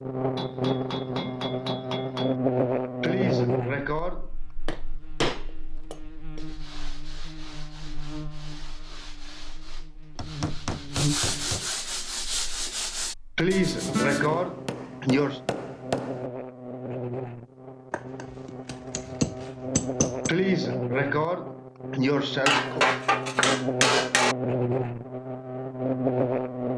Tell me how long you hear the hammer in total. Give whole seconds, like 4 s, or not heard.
12 s.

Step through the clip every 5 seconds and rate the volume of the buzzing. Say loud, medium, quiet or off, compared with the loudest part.
loud, quiet, medium, medium, loud, loud.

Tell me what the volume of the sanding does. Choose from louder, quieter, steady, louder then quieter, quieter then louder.
louder.